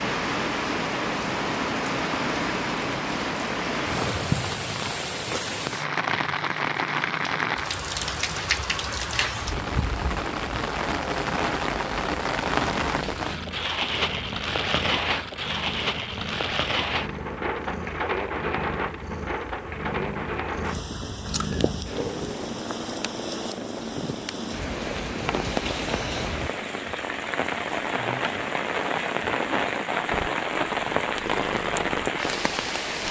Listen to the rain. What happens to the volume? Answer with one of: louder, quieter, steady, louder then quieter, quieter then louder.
quieter then louder.